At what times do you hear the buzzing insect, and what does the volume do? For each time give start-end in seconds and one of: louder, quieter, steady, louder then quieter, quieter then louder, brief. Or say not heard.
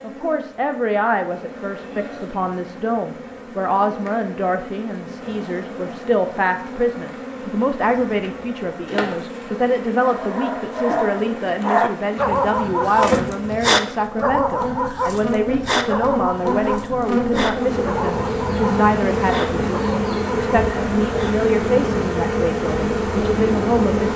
0.0-24.1 louder.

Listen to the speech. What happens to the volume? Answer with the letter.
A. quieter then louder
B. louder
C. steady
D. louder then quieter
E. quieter
C.